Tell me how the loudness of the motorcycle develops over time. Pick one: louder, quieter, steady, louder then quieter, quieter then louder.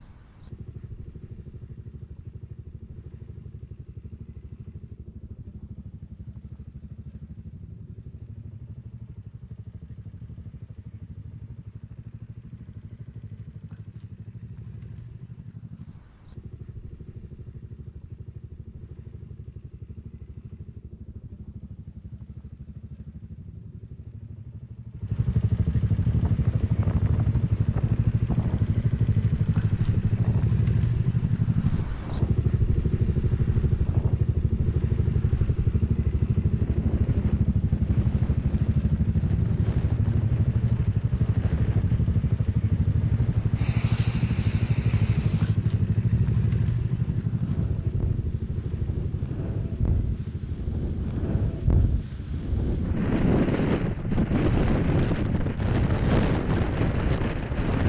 louder.